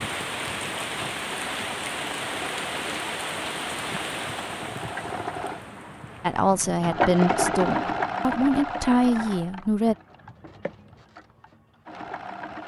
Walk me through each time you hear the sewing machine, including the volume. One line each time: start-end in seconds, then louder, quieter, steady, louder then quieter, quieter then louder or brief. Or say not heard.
0.0-12.6 louder then quieter.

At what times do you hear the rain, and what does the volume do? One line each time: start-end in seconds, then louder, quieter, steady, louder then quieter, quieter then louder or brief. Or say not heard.
0.0-6.8 quieter.